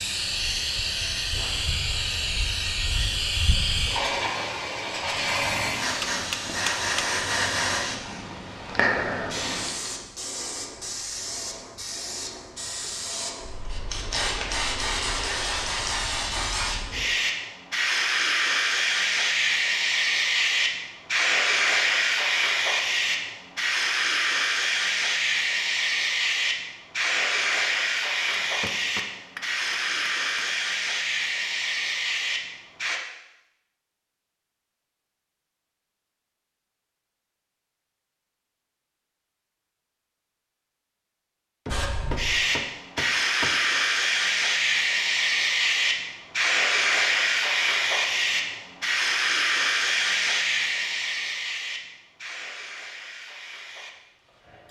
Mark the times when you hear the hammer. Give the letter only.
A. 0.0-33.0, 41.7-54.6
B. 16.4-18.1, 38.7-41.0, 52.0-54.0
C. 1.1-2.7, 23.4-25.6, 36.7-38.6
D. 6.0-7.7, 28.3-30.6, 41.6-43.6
D.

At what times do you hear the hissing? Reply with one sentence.
The hissing can be heard from 0.0 to 33.0 s and from 41.7 to 54.6 s.